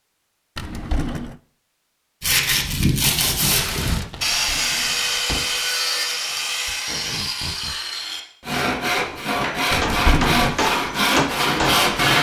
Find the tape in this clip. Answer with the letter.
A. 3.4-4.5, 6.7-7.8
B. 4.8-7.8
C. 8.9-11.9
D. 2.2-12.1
A.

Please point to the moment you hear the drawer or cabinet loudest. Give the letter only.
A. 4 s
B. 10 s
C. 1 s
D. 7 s
B.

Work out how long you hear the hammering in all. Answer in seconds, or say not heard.
3 s.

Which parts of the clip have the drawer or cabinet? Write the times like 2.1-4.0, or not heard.
0.6-1.4, 4.2-5.5, 9.7-10.6.